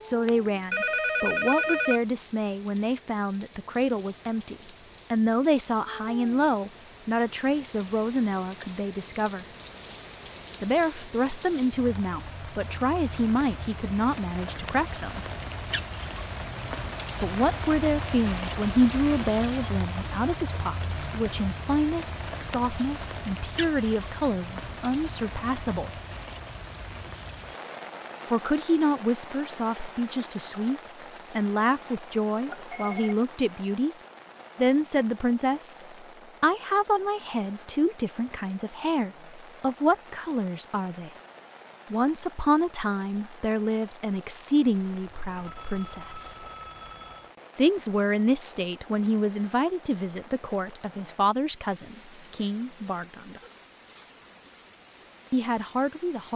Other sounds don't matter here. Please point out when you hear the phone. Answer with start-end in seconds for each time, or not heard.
0.2-2.0, 32.5-33.1, 45.0-47.4.